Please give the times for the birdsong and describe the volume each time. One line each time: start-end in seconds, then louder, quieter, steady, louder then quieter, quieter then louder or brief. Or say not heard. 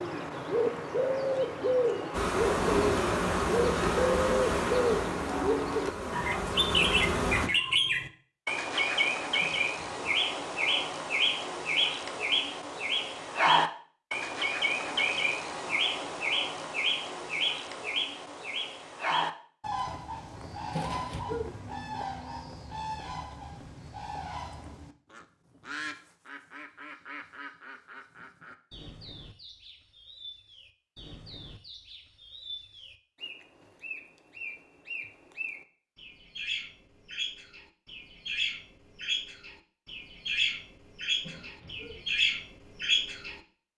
0.0-43.4 quieter then louder.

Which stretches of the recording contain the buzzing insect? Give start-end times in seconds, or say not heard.
2.1-7.5.